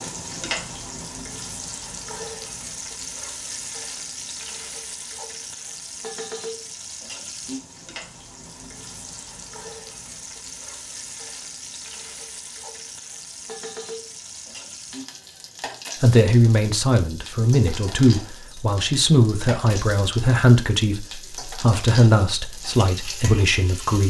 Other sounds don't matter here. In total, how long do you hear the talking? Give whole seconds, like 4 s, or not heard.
8 s.